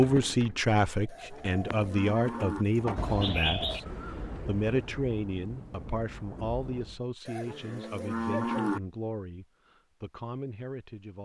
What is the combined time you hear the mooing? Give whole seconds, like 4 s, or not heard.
3 s.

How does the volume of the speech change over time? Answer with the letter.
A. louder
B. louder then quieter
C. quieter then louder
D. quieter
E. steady
D.